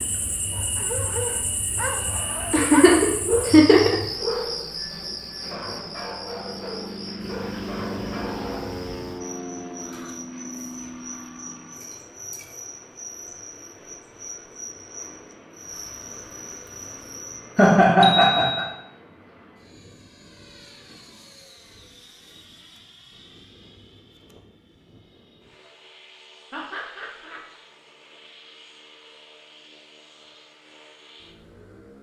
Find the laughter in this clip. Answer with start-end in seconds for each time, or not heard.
2.5-4.0, 17.6-18.6, 26.5-27.4.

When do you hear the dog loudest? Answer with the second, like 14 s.
3 s.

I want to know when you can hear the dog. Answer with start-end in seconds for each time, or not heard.
0.8-8.7.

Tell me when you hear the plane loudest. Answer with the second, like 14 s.
8 s.